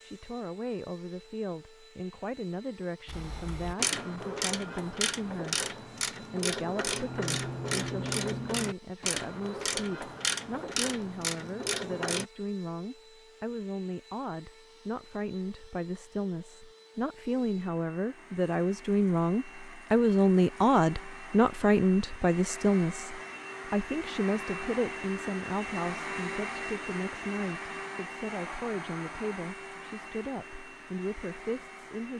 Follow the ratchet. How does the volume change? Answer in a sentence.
The loudness of the ratchet stays about the same.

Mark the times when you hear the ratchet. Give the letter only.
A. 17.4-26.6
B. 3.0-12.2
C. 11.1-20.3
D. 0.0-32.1
B.